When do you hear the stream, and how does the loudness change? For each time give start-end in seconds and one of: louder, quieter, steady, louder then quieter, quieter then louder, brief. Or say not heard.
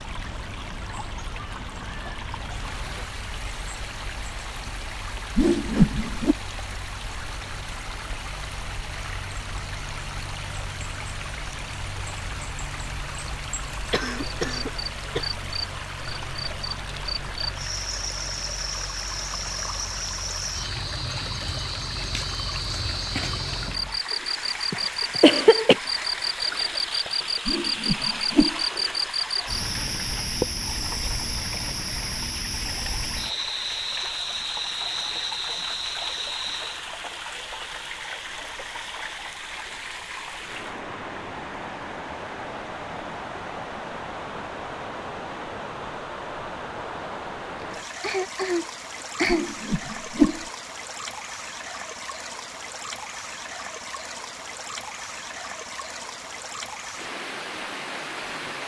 0.0-58.6 steady.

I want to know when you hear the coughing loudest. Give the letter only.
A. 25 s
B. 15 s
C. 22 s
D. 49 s
A.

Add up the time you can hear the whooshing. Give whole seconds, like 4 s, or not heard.
3 s.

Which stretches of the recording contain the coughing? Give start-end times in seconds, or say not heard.
13.8-15.3, 24.7-25.8, 47.6-49.5.